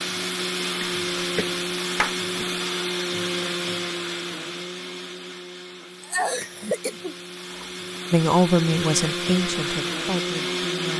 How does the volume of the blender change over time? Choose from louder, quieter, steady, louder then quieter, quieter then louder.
quieter then louder.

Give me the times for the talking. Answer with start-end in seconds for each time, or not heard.
8.1-10.9.